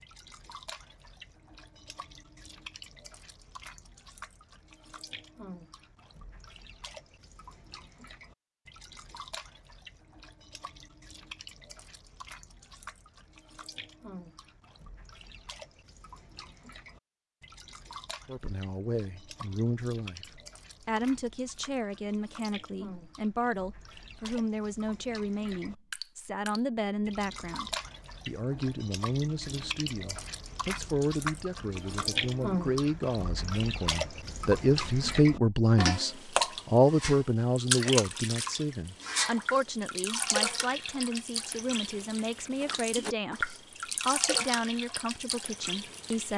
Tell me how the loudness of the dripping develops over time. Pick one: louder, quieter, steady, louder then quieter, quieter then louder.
louder.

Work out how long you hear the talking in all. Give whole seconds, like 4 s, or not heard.
28 s.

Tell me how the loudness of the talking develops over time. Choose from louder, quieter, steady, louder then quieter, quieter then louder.
louder then quieter.